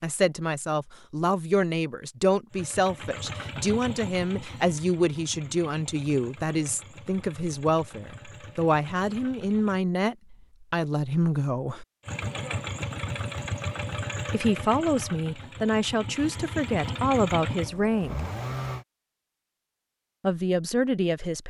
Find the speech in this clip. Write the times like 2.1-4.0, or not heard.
0.0-11.8, 14.3-18.2, 20.2-21.4.